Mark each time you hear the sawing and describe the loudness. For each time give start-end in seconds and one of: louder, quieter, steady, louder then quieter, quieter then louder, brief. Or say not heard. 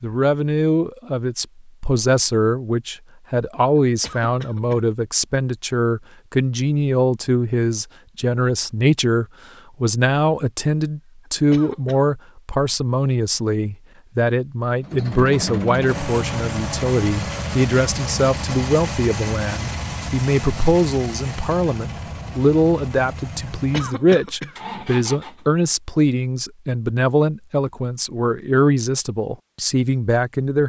not heard.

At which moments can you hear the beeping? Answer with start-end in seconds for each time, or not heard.
not heard.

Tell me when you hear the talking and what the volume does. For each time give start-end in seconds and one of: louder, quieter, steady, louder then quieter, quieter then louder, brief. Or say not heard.
0.0-30.6 steady.